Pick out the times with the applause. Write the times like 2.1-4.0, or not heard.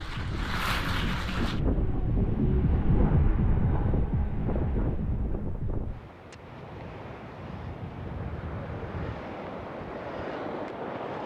0.0-1.6.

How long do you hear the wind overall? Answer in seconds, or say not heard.
11 s.